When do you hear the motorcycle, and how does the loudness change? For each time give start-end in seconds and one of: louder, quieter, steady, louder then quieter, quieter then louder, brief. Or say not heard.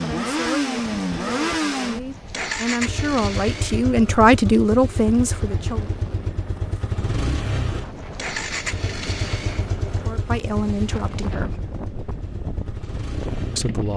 0.0-13.9 quieter.